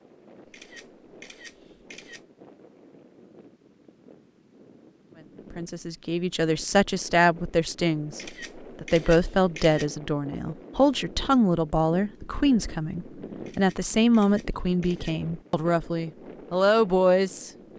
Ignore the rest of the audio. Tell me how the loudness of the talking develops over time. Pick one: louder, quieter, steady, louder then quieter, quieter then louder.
steady.